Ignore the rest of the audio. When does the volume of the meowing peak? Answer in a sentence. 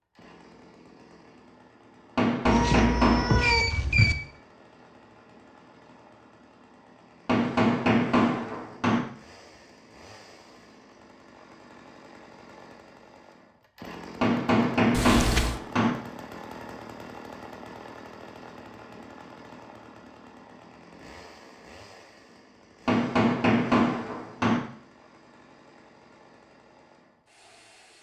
The loudest moment of the meowing is at 3 seconds.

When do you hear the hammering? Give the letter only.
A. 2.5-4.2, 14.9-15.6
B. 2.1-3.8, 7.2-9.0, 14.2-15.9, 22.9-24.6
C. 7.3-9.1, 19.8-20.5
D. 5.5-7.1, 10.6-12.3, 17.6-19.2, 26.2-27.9
B.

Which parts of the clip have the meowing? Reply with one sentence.
The meowing can be heard from 2.5 to 4.2 s and from 14.9 to 15.6 s.